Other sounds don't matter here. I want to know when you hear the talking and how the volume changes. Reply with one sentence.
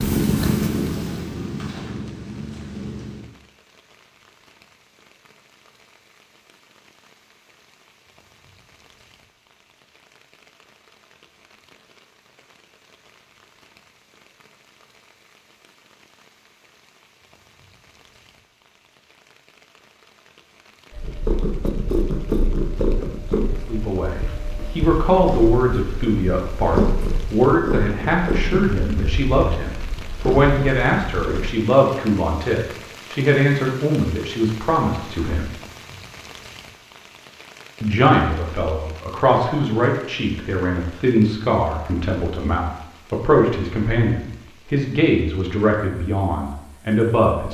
The talking can be heard from 23.6 to 35.5 s, at a steady volume; and from 37.8 to 47.5 s, at a steady volume.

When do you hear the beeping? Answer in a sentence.
You can't hear the beeping here.